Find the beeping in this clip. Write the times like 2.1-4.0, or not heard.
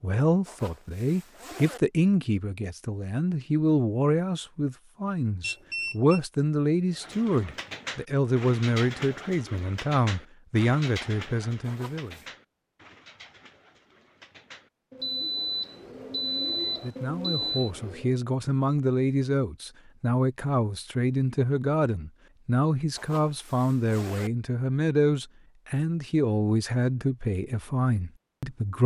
5.4-6.2, 15.0-17.7.